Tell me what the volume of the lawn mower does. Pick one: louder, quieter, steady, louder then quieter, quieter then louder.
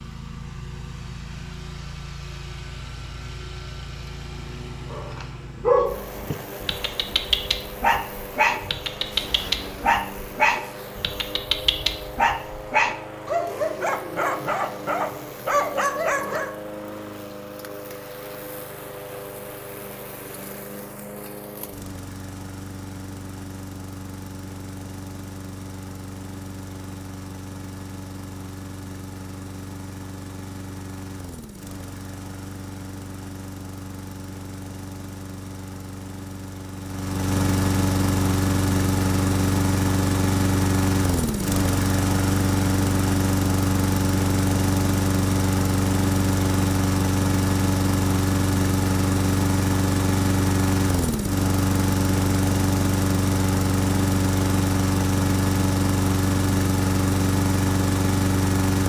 louder.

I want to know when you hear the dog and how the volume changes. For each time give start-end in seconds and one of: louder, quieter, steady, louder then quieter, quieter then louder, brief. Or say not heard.
4.9-16.5 steady.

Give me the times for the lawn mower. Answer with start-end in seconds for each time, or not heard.
0.0-58.8.